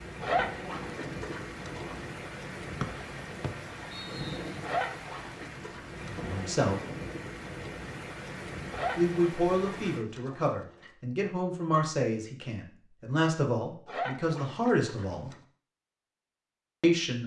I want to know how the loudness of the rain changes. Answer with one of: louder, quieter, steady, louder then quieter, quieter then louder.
steady.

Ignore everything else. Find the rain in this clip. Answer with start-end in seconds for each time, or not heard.
0.0-10.1.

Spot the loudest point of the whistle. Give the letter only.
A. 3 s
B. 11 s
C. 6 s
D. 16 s
A.